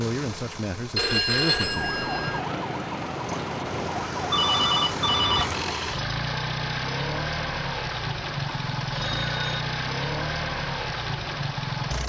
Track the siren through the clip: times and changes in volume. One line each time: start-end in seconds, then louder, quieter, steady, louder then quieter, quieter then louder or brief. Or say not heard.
1.4-5.8 steady.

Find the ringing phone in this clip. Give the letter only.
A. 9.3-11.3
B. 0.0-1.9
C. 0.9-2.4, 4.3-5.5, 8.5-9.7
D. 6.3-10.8
C.